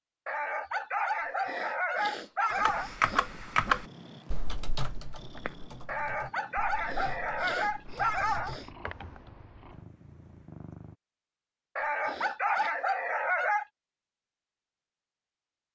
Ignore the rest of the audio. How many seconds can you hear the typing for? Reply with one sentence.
You can hear the typing for 7 seconds altogether.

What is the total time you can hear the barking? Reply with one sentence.
You can hear the barking for 7 seconds altogether.